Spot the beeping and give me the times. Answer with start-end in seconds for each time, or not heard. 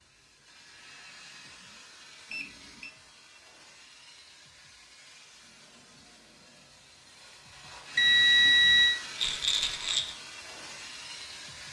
2.3-2.9, 8.0-8.9.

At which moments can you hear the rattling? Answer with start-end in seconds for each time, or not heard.
9.2-10.2.